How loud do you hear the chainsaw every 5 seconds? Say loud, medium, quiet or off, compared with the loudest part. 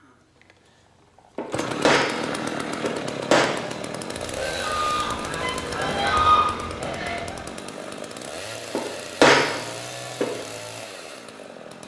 loud, loud, medium.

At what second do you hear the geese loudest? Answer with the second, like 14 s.
6 s.